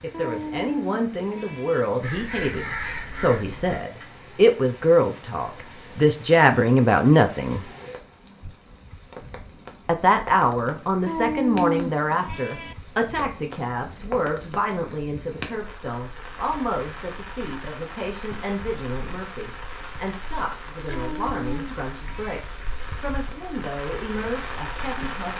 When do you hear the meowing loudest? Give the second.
12 s.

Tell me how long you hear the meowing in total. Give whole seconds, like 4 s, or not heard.
5 s.